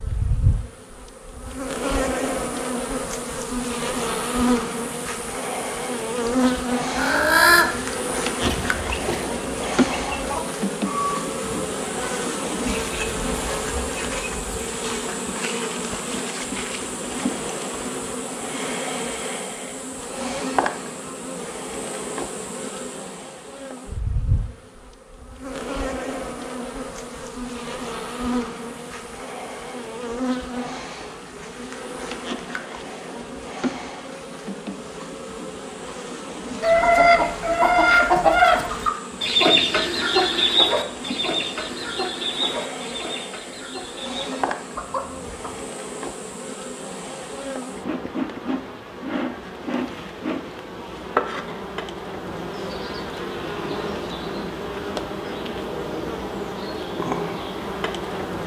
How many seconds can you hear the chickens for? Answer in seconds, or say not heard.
18 s.